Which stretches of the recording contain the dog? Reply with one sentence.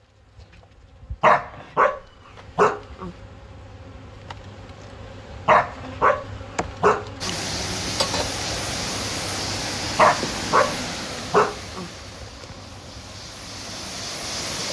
The dog can be heard from 1.2 to 3.1 s, from 5.5 to 7.3 s and from 9.9 to 11.9 s.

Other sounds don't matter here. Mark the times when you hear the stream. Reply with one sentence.
You can hear the stream from 7.2 to 14.6 s.